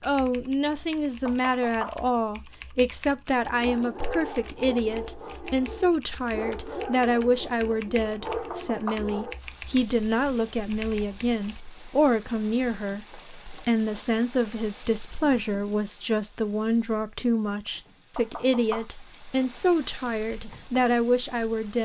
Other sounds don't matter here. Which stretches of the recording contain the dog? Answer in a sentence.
You can hear the dog from 3.5 to 9.4 s.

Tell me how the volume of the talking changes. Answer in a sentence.
The volume of the talking stays about the same.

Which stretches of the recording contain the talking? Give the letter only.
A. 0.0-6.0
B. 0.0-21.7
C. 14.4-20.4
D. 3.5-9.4
B.